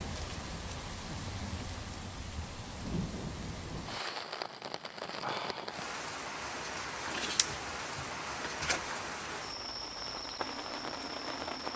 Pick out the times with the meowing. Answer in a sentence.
The meowing can be heard from 7.0 to 8.9 s.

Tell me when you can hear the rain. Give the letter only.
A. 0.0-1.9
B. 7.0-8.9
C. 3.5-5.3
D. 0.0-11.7
D.